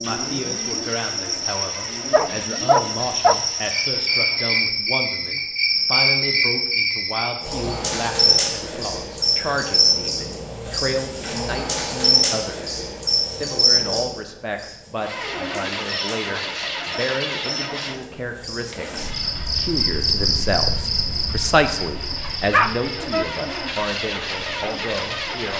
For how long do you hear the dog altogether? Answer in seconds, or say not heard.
2 s.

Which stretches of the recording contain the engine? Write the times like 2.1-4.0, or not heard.
0.0-4.6, 14.9-25.5.